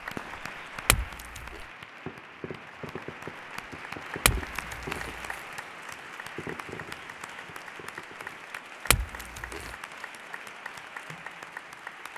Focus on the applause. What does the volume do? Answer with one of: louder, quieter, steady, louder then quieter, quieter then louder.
steady.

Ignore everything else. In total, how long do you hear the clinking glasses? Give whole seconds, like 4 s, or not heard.
2 s.